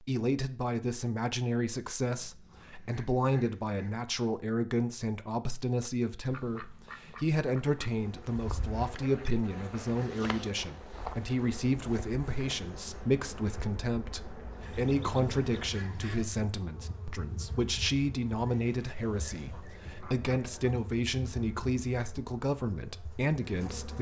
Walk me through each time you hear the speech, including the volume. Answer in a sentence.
The speech can be heard from 0.1 to 23.9 s, at a steady volume.